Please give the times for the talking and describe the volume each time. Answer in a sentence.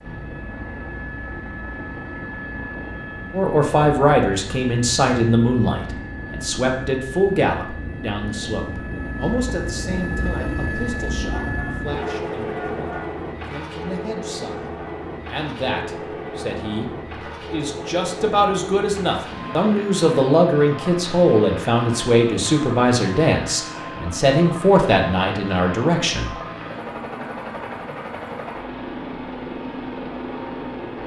The talking can be heard from 3.3 to 26.4 s, getting quieter then louder.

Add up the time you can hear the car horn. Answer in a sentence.
You can hear the car horn for 2 seconds altogether.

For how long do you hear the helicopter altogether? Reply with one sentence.
You can hear the helicopter for 31 seconds altogether.